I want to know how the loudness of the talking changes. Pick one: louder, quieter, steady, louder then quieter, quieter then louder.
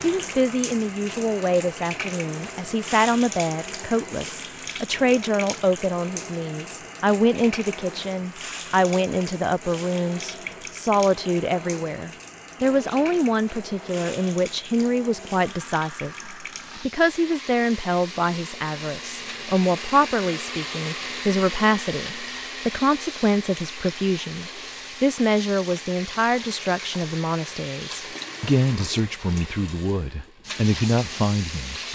steady.